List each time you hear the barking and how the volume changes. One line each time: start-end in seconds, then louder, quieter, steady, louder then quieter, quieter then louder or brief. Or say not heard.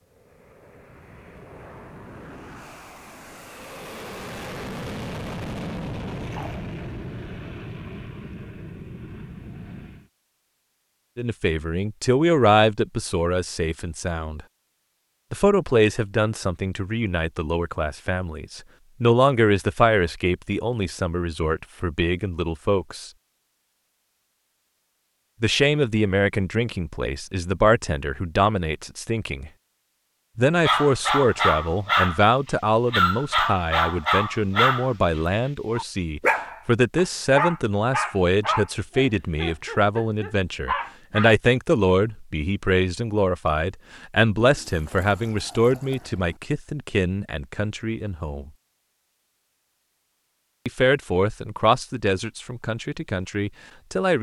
30.6-32.2 brief
32.9-41.4 quieter.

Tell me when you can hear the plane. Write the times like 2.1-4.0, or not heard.
0.1-10.1.